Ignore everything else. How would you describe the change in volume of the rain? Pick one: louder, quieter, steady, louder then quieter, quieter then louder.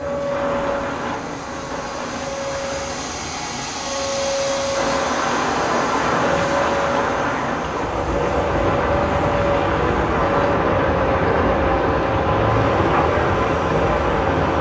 louder.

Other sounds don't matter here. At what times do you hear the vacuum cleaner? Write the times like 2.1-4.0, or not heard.
0.0-14.5.